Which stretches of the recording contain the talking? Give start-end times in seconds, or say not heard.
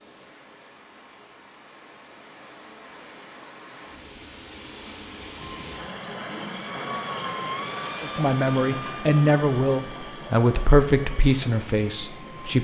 8.0-12.5.